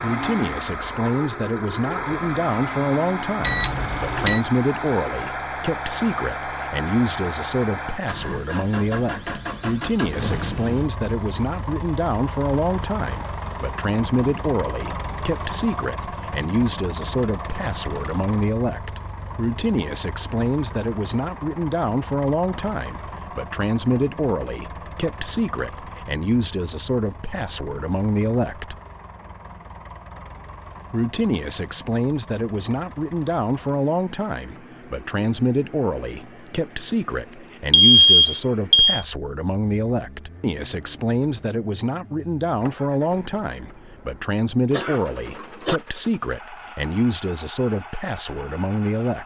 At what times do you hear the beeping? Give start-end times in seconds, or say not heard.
3.4-4.4, 37.7-39.0.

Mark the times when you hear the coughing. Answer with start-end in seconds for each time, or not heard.
44.7-45.8.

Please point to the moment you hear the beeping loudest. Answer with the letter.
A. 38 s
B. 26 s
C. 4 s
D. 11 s
A.